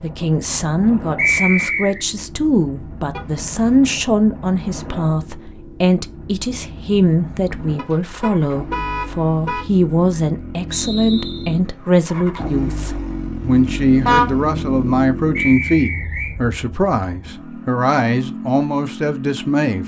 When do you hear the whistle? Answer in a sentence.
The whistle can be heard from 1.1 to 2.0 s, from 10.7 to 11.6 s and from 15.3 to 16.4 s.